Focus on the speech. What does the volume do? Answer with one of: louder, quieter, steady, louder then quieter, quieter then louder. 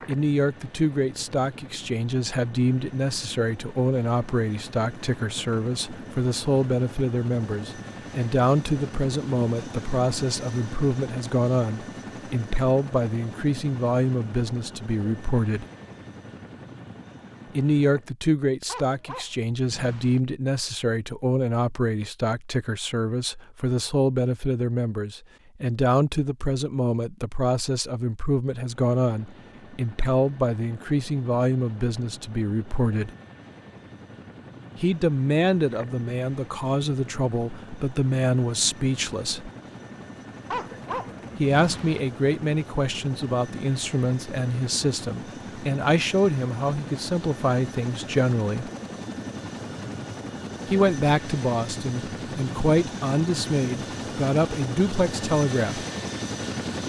steady.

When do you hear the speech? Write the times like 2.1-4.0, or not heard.
0.1-15.7, 17.6-33.1, 34.8-39.5, 41.4-48.7, 50.6-55.9.